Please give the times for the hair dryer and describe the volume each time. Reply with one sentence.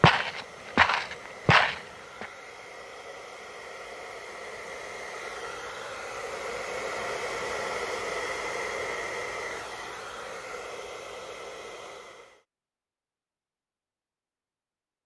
You can hear the hair dryer from 0.1 to 12.4 s, getting louder then quieter.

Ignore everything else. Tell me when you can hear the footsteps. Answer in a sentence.
You can hear the footsteps from 0.0 to 2.2 s.